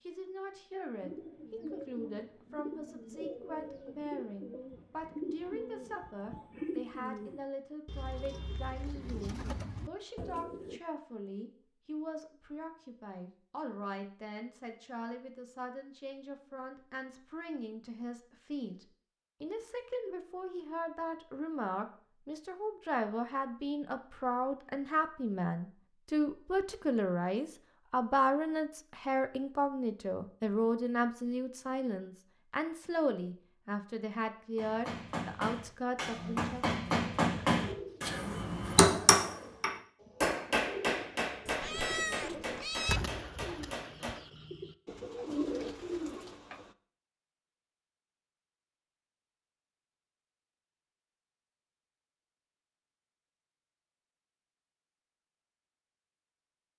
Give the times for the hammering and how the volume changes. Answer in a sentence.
The hammering can be heard from 34.5 to 44.2 s, getting louder then quieter.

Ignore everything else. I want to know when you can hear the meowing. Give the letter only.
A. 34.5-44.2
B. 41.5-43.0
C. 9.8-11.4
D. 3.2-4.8
B.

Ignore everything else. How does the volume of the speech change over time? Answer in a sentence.
The volume of the speech goes up.